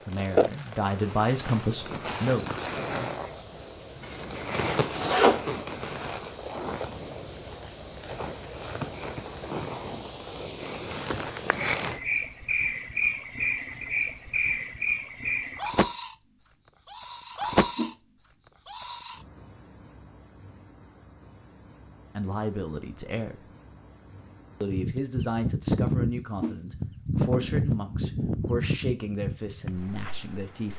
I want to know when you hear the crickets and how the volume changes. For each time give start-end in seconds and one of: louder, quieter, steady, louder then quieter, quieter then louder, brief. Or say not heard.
0.0-30.7 steady.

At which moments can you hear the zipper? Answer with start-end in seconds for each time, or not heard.
4.0-5.4.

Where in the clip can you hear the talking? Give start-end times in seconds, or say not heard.
0.1-3.1, 22.1-23.5, 24.6-30.7.